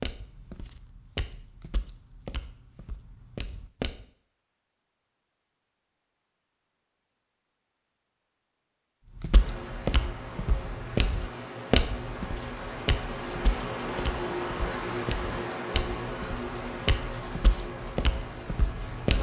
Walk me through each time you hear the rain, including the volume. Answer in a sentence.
The rain can be heard from 9.3 to 19.1 s, getting louder then quieter.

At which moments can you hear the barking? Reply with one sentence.
The barking can't be heard in this clip.